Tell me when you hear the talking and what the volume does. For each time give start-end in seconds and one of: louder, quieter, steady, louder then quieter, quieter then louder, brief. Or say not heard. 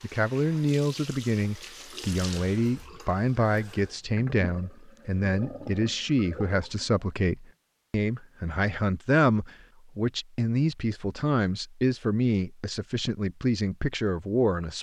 0.0-14.7 steady.